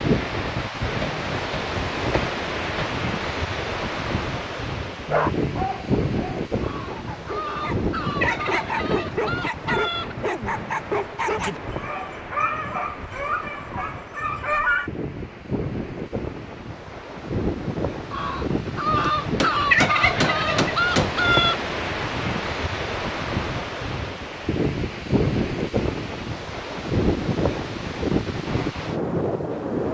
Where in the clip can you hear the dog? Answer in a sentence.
You can hear the dog from 5.0 to 14.9 s.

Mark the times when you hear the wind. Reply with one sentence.
The wind can be heard from 0.0 to 29.8 s.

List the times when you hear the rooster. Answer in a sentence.
The rooster can be heard from 6.6 to 10.2 s and from 18.1 to 21.6 s.